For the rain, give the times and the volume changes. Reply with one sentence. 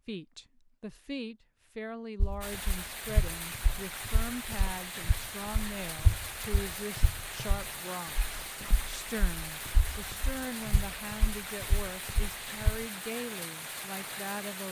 You can hear the rain from 2.4 to 14.6 s, at a steady volume.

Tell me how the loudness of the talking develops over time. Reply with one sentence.
The loudness of the talking stays about the same.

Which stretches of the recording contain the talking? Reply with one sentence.
You can hear the talking from 0.1 to 14.6 s.